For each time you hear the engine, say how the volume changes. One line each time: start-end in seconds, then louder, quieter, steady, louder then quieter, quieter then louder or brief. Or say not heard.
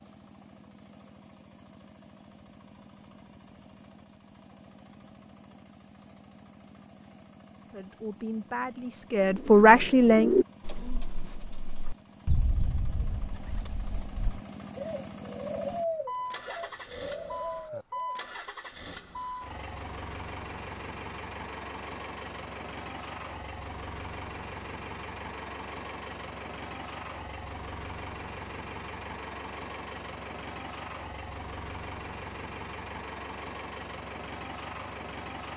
0.0-35.5 louder.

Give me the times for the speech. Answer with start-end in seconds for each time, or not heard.
7.7-10.3.